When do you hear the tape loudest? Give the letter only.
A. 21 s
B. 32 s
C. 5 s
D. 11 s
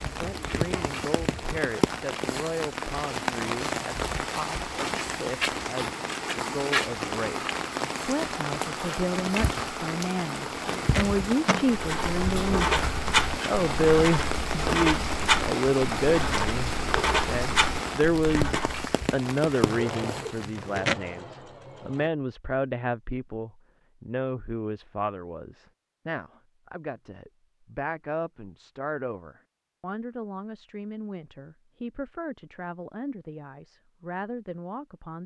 A.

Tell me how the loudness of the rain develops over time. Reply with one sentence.
The loudness of the rain stays about the same.